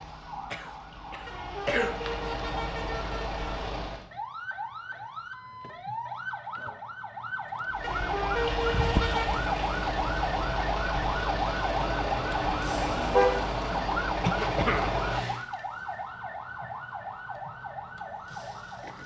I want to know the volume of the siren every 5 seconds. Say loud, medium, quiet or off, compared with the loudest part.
medium, loud, loud, medium.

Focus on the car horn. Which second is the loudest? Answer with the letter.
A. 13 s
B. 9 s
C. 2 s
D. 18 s
A.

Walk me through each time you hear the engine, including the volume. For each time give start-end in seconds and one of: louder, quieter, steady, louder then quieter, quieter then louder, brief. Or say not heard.
0.0-4.1 louder
7.7-15.4 steady.